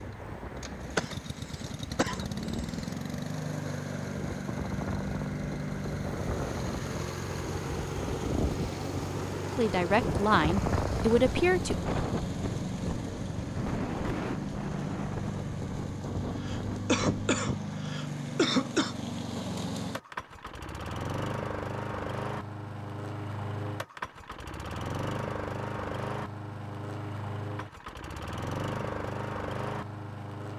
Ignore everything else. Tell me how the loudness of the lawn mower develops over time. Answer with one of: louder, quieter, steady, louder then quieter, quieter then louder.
steady.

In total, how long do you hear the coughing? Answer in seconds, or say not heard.
5 s.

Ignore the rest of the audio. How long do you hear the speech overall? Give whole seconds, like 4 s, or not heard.
2 s.